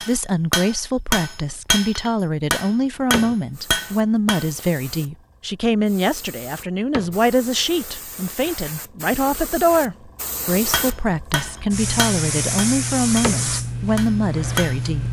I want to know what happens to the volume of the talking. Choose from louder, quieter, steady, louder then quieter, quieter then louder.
steady.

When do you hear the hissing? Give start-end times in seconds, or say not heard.
3.5-15.0.